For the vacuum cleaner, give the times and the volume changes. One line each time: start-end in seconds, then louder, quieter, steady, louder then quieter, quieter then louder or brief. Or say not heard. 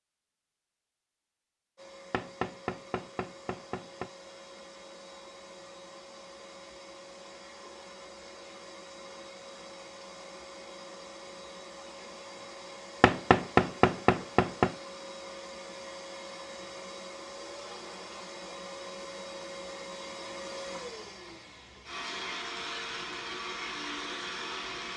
1.8-24.9 louder.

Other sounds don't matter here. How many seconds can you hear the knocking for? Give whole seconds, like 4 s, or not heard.
4 s.